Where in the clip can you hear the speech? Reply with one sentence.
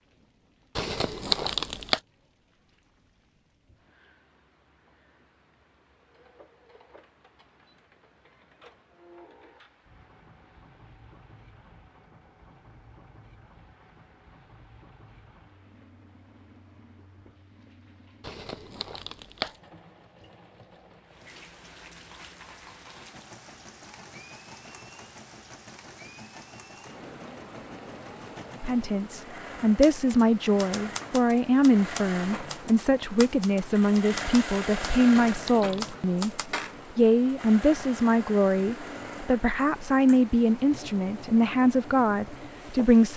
You can hear the speech from 28.6 to 36.3 s and from 37.0 to 43.1 s.